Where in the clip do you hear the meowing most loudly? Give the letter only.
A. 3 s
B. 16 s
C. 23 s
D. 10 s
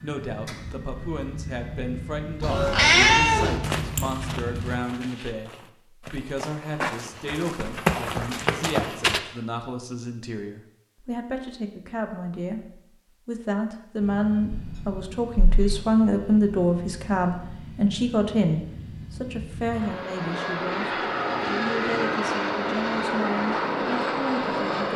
A.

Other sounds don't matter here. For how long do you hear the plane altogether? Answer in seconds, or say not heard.
16 s.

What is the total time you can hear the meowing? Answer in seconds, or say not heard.
3 s.